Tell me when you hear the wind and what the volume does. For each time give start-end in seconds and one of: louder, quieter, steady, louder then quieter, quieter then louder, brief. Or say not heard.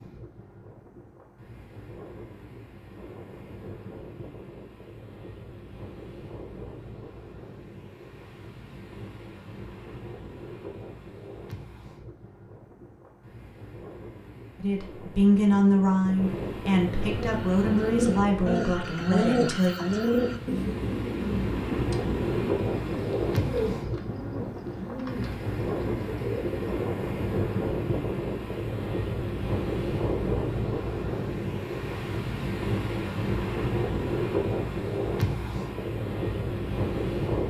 0.0-37.4 louder.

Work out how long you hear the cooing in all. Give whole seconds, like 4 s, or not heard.
10 s.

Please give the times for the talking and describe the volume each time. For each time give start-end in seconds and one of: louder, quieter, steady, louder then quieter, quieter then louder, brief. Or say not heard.
14.6-19.8 quieter.